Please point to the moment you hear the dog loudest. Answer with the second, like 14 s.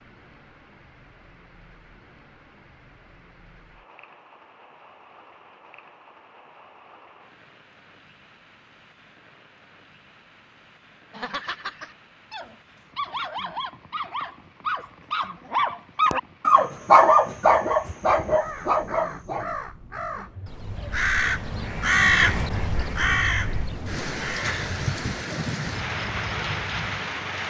17 s.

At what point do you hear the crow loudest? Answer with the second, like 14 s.
22 s.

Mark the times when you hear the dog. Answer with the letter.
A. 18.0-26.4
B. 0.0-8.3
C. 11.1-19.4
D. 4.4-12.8
C.